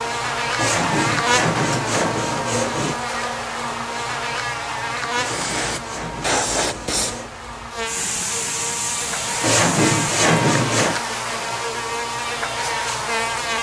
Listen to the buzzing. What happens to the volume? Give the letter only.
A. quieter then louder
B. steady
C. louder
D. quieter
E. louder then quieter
A.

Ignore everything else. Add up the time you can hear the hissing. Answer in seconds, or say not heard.
5 s.